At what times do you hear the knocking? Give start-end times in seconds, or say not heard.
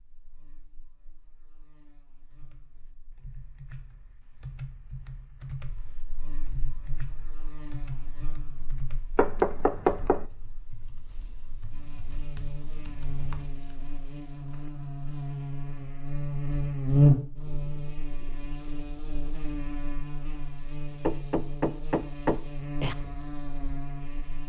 9.2-10.2, 21.0-22.9.